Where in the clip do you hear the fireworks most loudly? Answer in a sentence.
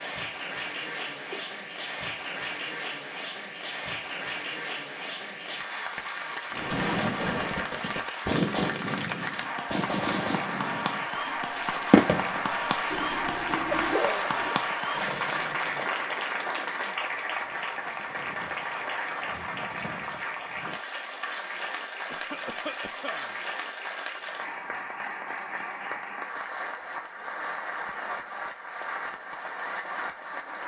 The loudest moment of the fireworks is at 12 seconds.